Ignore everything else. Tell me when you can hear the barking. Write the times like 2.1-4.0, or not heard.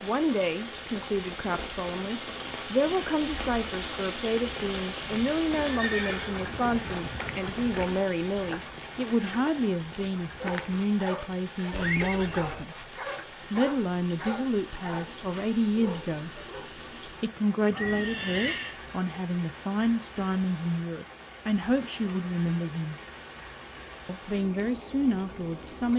10.3-16.8.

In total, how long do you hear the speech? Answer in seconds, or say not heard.
23 s.